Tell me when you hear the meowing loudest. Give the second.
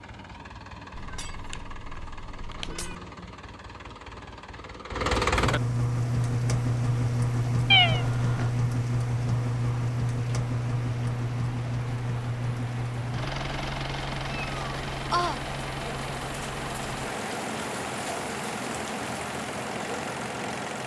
8 s.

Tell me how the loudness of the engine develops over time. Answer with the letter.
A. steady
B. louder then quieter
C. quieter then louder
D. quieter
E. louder
B.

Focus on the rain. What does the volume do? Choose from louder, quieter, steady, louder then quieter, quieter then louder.
louder.